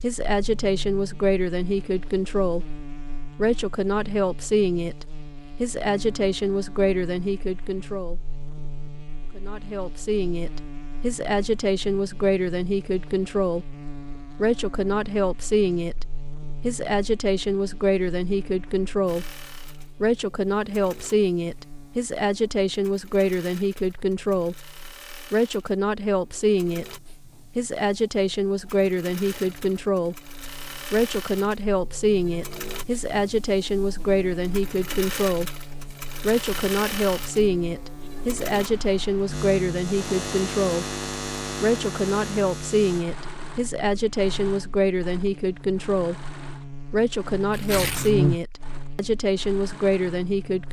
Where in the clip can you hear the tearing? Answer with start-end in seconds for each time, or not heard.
47.5-48.1.